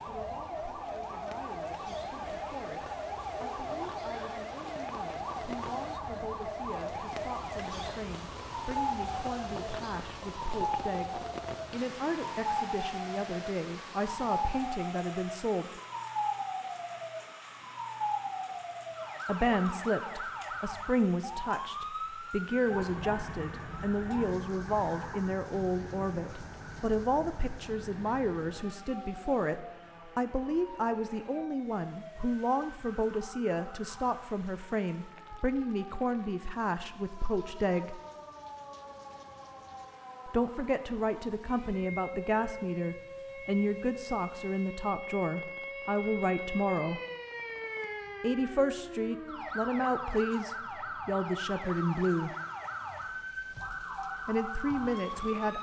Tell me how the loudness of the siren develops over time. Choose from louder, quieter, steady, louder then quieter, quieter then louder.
quieter then louder.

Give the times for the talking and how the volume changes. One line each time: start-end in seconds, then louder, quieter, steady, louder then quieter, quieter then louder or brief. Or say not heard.
0.1-15.8 louder
19.2-38.0 steady
40.2-47.0 steady
48.2-52.4 steady
54.2-55.5 brief.